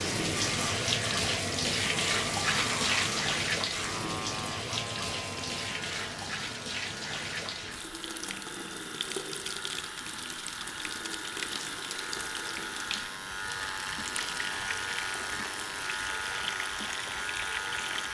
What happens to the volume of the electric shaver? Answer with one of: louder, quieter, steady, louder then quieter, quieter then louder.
quieter then louder.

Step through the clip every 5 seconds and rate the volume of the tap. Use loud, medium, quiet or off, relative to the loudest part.
loud, medium, medium, medium.